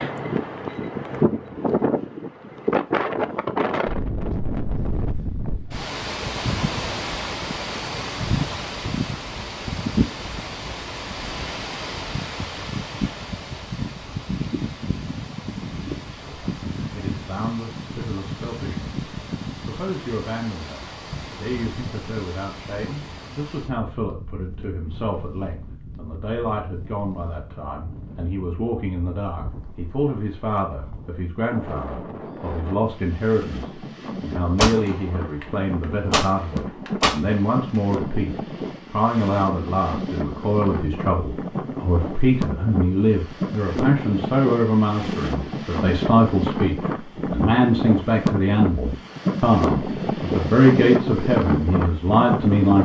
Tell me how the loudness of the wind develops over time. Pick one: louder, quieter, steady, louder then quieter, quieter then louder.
quieter then louder.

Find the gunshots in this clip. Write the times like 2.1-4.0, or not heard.
34.5-37.8.